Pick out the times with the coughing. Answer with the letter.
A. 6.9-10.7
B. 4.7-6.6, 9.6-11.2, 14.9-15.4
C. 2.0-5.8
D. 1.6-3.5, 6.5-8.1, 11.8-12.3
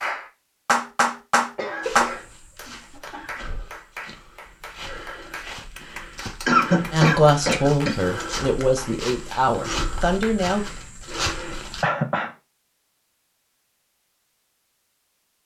D.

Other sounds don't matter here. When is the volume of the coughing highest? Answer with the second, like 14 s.
7 s.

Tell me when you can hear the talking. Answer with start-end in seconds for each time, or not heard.
6.9-10.7.